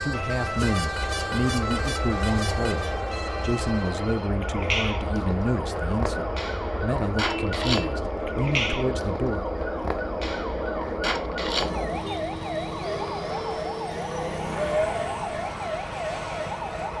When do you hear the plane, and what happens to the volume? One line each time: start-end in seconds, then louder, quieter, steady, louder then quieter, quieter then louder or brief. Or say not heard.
0.0-16.9 steady.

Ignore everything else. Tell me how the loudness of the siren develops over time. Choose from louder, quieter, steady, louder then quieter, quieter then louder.
steady.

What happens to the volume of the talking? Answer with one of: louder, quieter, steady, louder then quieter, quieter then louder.
steady.